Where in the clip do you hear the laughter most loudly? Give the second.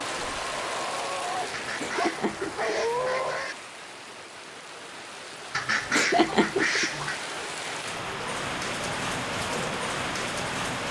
6 s.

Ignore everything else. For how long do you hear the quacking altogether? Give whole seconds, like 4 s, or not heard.
4 s.